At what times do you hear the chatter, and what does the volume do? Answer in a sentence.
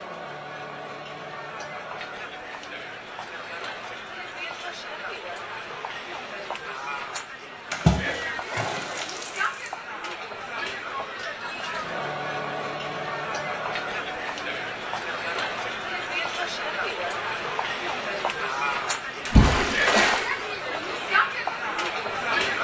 You can hear the chatter from 0.0 to 22.5 s, getting louder.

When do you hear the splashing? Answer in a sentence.
You can hear the splashing from 7.7 to 9.7 s and from 19.2 to 20.3 s.